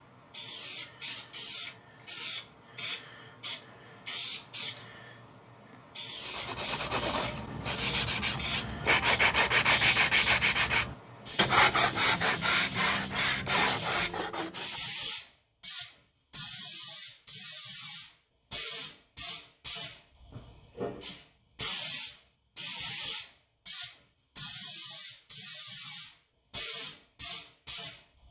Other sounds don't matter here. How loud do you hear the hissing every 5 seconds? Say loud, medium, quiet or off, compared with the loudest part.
medium, loud, loud, loud, loud, loud.